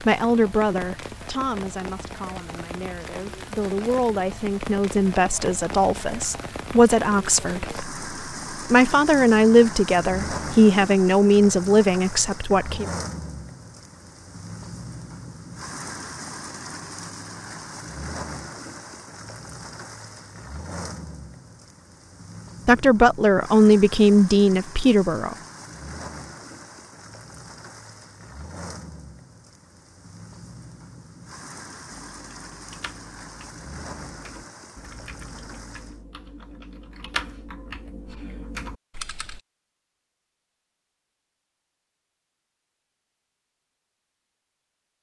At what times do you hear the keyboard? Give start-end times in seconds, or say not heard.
32.1-39.4.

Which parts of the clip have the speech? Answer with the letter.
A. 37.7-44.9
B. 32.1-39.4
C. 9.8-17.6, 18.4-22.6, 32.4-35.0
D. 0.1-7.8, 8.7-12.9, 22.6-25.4
D.